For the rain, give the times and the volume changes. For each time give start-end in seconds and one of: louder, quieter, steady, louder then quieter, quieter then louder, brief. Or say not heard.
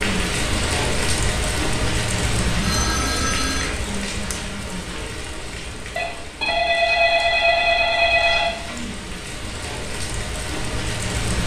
0.0-11.4 quieter then louder.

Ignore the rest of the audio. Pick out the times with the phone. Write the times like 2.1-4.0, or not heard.
2.6-3.6, 6.0-8.8.